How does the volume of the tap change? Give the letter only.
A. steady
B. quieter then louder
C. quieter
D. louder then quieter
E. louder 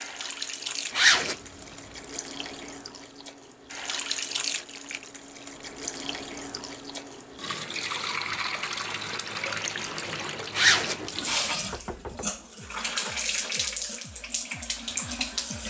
E.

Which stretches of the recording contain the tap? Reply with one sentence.
The tap can be heard from 0.0 to 15.6 s.